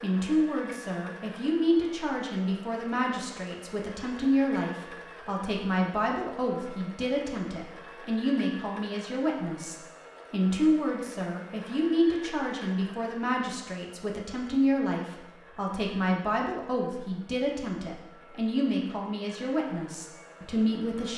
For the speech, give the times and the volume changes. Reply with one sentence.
You can hear the speech from 0.0 to 21.1 s, at a steady volume.